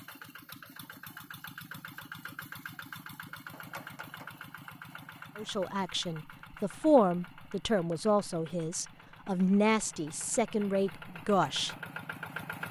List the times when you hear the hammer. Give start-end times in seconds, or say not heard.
3.5-5.1.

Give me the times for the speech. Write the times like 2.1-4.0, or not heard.
5.3-11.8.